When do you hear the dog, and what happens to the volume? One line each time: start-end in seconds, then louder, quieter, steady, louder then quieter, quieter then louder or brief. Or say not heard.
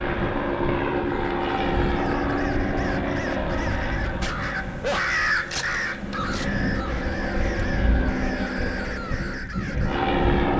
not heard.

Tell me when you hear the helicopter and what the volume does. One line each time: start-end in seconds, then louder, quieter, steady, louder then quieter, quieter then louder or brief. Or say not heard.
0.0-10.5 quieter then louder.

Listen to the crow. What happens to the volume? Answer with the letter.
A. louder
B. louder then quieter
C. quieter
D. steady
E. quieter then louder
B.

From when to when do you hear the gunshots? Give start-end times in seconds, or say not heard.
not heard.